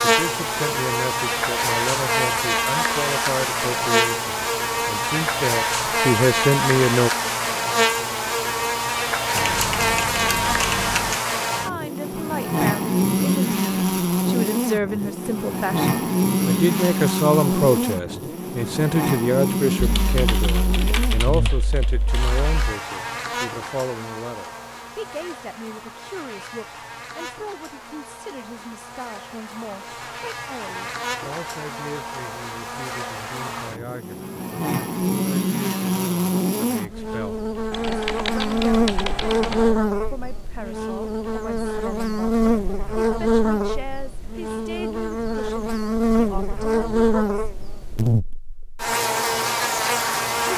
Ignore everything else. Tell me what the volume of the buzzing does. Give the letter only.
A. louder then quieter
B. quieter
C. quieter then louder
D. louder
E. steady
C.